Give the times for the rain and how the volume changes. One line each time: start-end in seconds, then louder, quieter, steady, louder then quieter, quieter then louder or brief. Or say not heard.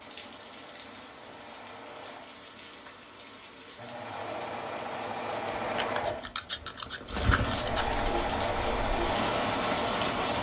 0.0-10.3 louder.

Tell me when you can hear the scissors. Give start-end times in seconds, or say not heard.
5.6-8.2.